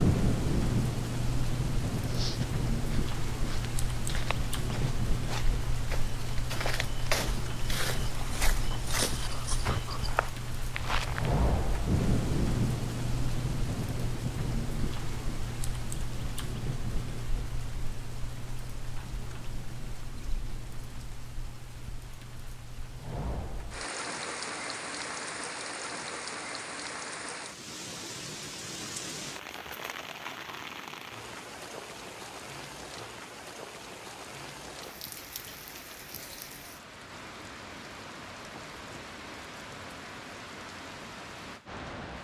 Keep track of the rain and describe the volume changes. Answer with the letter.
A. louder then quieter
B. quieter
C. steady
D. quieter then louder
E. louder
B.